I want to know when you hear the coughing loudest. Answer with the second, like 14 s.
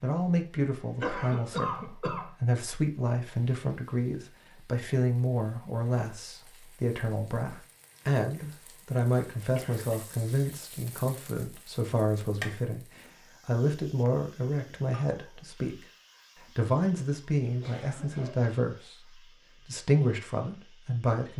2 s.